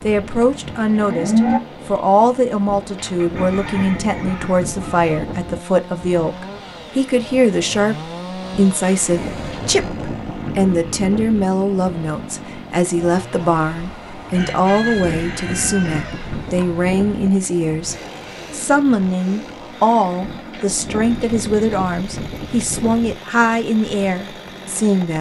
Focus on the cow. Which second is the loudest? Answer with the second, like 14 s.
1 s.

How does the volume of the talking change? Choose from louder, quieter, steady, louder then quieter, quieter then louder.
steady.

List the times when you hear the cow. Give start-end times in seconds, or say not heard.
0.0-1.6.